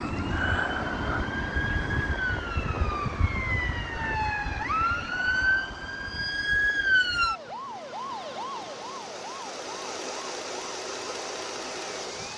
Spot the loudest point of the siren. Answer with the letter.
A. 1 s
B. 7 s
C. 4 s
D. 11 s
B.